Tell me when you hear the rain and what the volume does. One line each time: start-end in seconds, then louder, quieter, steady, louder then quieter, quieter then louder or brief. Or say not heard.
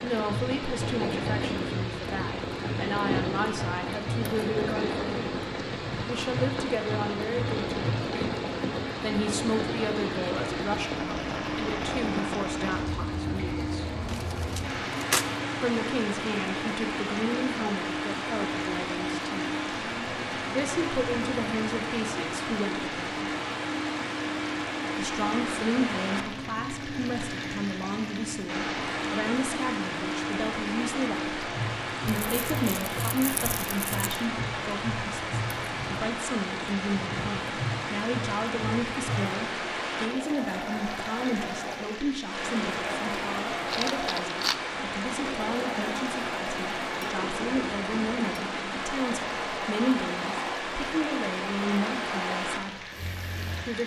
0.0-53.8 steady.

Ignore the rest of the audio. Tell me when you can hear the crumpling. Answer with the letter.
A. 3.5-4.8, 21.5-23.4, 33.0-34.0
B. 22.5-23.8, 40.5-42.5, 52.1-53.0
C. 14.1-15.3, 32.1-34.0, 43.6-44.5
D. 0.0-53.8
C.